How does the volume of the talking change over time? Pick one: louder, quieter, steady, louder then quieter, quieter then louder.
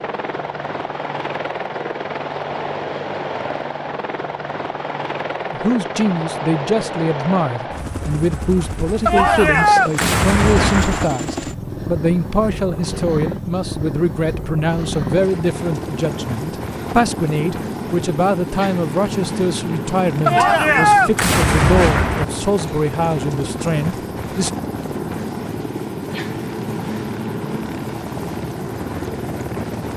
steady.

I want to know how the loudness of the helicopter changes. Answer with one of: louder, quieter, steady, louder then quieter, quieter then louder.
steady.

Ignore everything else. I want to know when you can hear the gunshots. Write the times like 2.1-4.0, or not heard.
9.1-11.1, 20.2-22.2.